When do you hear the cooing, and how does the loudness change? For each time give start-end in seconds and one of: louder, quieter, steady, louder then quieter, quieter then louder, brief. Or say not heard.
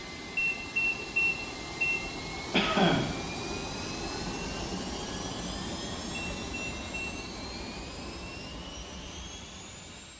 not heard.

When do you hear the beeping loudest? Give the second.
1 s.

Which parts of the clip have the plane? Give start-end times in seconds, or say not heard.
0.0-10.1.